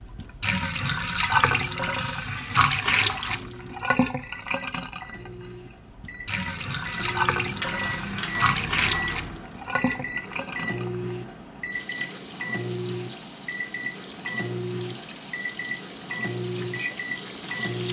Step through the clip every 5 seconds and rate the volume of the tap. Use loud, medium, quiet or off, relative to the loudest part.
loud, loud, quiet, medium.